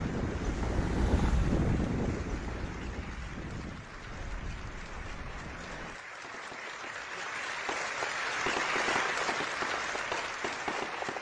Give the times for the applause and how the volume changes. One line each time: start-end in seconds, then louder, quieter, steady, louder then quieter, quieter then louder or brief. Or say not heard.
0.0-11.1 louder.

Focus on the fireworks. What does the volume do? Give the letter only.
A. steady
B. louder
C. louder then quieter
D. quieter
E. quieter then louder
B.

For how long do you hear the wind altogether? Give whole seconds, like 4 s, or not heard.
6 s.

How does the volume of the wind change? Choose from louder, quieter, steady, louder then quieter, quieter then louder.
quieter.